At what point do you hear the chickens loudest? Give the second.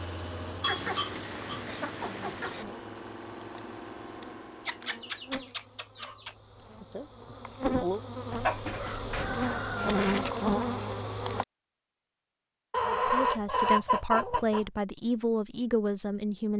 14 s.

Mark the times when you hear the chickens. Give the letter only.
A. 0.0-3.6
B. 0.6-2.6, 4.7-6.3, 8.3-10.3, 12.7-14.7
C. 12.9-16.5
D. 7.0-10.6
B.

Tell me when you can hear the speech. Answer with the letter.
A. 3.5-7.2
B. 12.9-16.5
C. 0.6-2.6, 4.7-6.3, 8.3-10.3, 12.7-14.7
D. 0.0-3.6
B.